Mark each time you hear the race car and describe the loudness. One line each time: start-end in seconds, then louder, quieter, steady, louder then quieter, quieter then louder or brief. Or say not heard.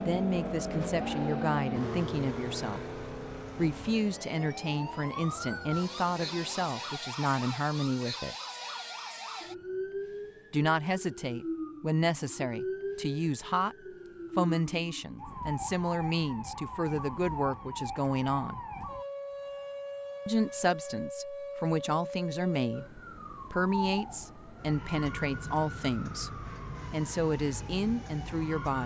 0.0-7.1 quieter.